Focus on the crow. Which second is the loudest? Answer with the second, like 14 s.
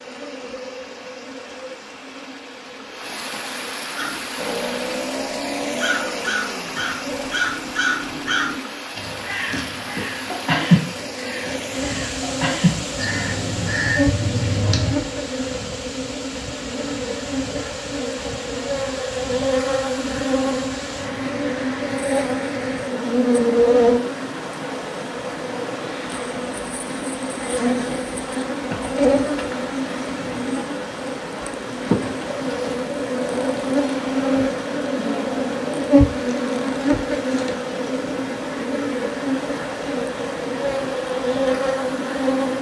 11 s.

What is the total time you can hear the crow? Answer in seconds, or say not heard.
11 s.